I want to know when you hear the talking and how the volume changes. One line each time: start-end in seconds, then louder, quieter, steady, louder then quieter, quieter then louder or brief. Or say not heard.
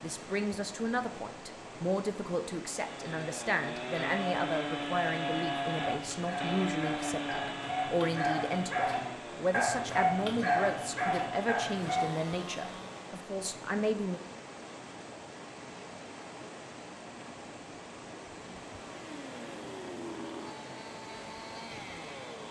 0.0-14.2 steady.